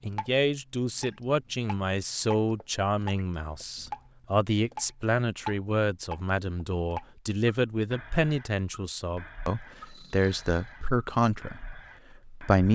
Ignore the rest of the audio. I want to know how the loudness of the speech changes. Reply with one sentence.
The loudness of the speech stays about the same.